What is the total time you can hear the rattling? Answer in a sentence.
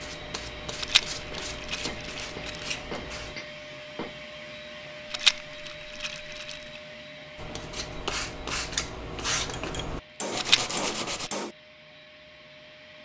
You can hear the rattling for 4 seconds altogether.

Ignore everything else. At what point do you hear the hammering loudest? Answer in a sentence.
The volume of the hammering peaks at 11 seconds.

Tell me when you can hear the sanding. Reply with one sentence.
You can hear the sanding from 0.0 to 3.4 s and from 7.3 to 11.3 s.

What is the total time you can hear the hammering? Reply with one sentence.
You can hear the hammering for 5 seconds altogether.